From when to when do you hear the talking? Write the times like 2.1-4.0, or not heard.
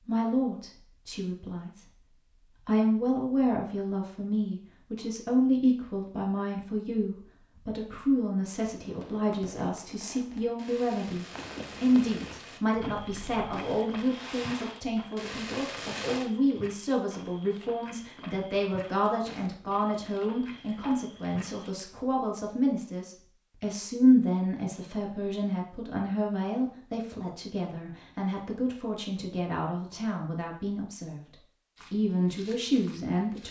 0.1-33.4.